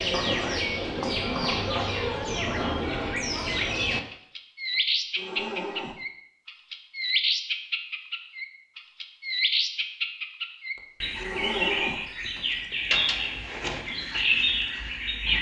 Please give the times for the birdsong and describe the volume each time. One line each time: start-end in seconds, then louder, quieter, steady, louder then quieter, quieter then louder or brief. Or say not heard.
0.0-15.3 steady.